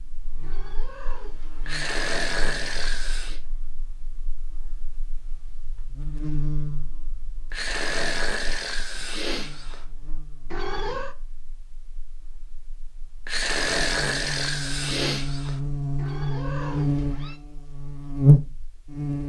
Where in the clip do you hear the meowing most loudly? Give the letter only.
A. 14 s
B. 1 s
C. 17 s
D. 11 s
D.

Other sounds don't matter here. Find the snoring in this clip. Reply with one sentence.
You can hear the snoring from 1.6 to 3.4 s, from 7.5 to 9.8 s and from 13.2 to 15.6 s.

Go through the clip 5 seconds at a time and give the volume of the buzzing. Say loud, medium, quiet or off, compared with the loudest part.
quiet, quiet, quiet, loud.